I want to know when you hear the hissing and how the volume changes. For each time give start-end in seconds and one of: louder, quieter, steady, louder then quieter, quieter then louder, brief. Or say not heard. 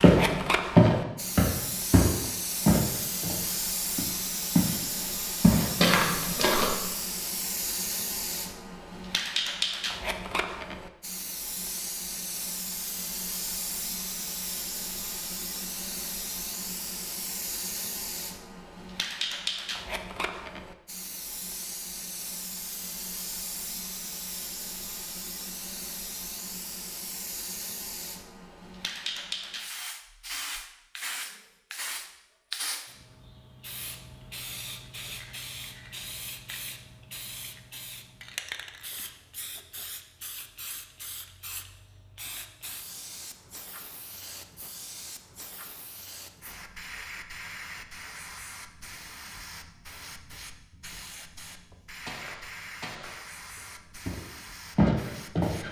0.0-55.6 quieter.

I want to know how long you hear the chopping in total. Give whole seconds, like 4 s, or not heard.
not heard.